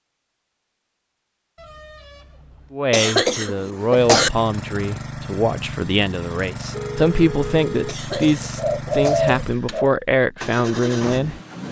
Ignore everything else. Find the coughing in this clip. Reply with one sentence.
The coughing can be heard from 2.9 to 4.3 s and from 7.8 to 9.2 s.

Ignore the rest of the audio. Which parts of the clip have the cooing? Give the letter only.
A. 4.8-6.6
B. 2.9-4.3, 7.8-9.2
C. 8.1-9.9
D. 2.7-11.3
C.